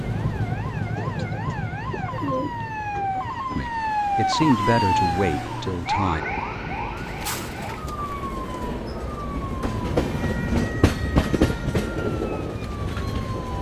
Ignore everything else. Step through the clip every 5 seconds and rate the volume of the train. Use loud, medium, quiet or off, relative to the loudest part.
medium, medium, loud.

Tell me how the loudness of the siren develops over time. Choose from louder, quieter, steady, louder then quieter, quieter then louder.
louder then quieter.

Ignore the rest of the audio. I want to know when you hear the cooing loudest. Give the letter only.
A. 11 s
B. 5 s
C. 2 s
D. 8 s
C.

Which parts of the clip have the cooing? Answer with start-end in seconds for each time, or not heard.
0.9-3.1, 7.0-8.7.